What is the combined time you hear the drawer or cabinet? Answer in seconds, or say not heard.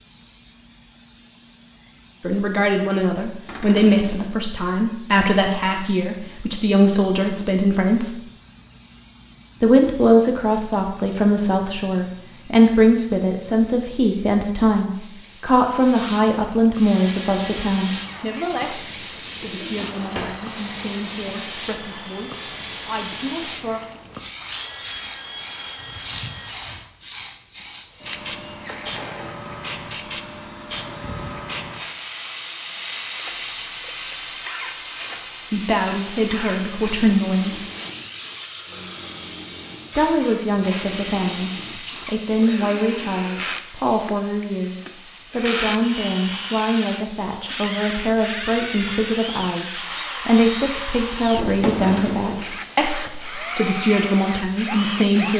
3 s.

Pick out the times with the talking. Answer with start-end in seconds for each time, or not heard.
2.2-8.2, 9.6-23.8, 35.5-37.5, 40.0-55.3.